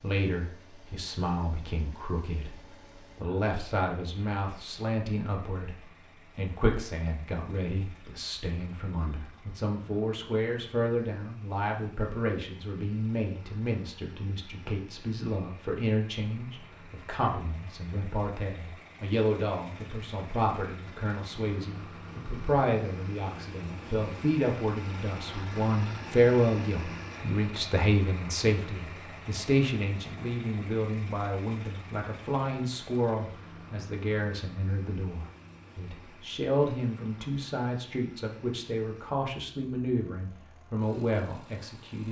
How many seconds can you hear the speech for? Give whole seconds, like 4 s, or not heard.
42 s.